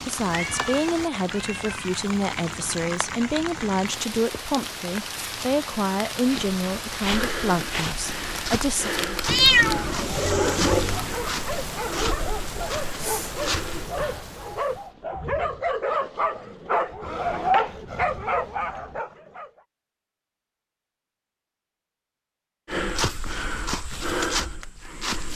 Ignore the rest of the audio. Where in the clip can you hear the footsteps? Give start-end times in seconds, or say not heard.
6.2-13.8, 22.6-25.3.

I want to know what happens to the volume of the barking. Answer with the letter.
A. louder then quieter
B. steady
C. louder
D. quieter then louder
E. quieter
C.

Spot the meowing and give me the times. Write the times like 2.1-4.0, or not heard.
0.2-2.0, 9.2-11.1, 17.1-19.0.